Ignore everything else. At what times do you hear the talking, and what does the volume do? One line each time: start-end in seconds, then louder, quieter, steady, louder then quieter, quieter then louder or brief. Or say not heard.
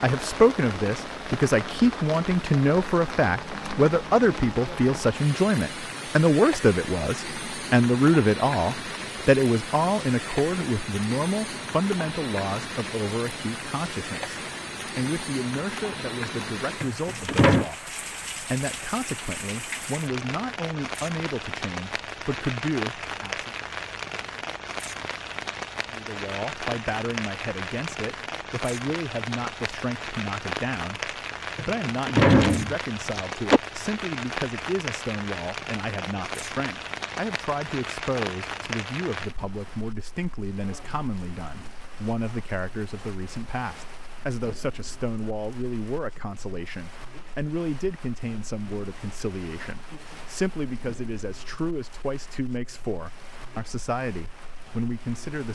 0.0-23.6 quieter
25.9-55.4 steady.